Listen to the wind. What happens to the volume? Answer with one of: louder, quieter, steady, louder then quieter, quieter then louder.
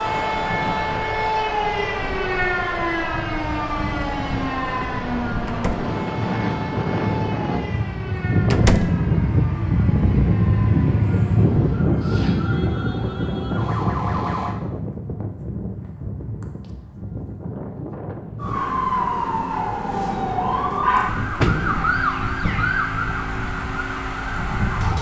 louder then quieter.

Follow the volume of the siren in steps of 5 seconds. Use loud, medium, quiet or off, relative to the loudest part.
loud, medium, medium, loud, loud.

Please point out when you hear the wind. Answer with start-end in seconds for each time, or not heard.
0.0-18.6.